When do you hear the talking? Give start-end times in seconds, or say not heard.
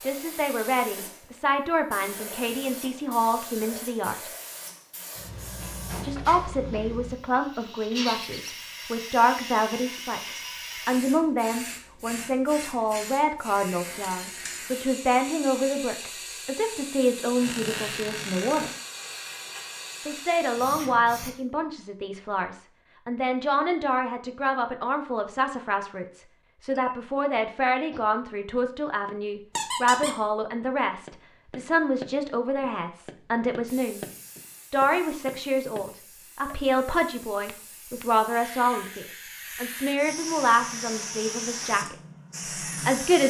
0.0-4.3, 6.0-18.8, 20.1-34.0, 34.7-42.0, 42.8-43.2.